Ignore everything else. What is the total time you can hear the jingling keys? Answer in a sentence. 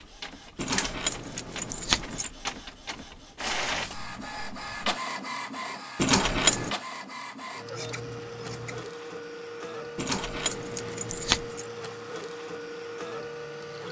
You can hear the jingling keys for 4 seconds altogether.